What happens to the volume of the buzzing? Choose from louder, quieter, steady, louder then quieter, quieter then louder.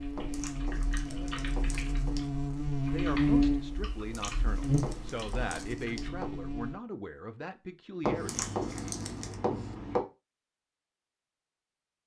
louder then quieter.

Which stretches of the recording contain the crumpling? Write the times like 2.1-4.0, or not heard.
0.3-2.3, 4.1-6.1, 8.2-9.3.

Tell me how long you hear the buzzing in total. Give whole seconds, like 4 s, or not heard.
7 s.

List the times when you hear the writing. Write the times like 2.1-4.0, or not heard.
0.1-2.1, 4.8-6.3, 8.0-10.1.